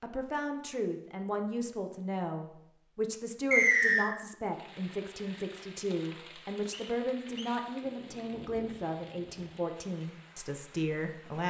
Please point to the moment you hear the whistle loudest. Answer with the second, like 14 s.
4 s.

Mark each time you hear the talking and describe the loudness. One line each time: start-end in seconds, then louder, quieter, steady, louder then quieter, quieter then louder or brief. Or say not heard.
0.0-11.4 steady.